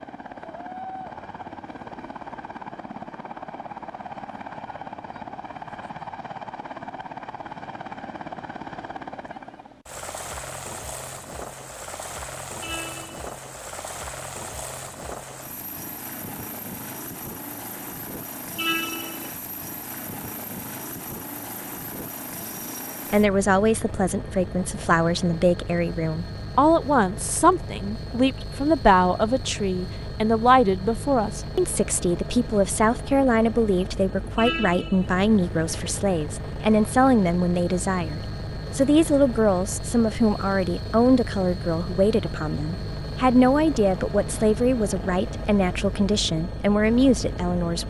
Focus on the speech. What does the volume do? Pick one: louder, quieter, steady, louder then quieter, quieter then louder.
steady.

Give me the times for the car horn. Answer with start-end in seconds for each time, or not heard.
12.6-13.3, 18.6-19.4, 34.4-35.1.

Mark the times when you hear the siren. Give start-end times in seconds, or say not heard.
not heard.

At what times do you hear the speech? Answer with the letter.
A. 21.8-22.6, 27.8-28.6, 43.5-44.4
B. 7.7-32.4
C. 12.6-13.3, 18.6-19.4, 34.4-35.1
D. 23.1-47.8
D.